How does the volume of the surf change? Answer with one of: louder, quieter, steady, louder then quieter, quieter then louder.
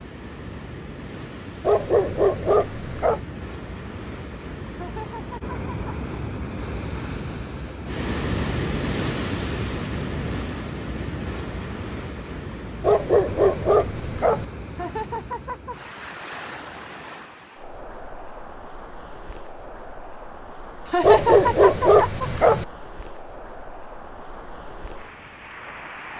louder then quieter.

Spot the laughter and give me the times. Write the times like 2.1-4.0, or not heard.
4.8-6.0, 14.7-15.8, 20.9-22.2.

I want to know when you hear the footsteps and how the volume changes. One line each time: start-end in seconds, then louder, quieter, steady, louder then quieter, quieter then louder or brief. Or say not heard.
not heard.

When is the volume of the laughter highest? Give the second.
21 s.